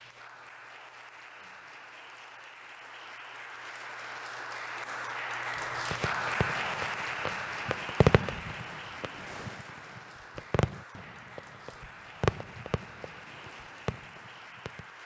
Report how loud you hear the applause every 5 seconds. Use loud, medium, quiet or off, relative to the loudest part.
medium, loud, quiet.